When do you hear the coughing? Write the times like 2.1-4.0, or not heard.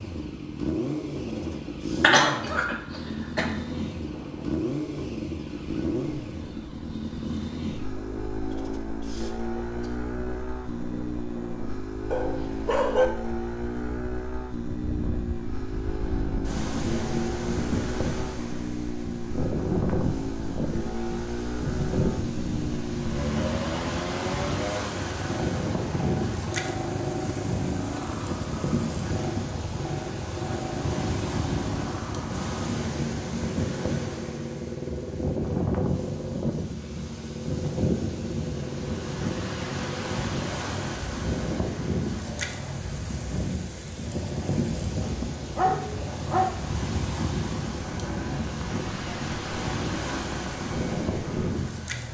2.0-3.5.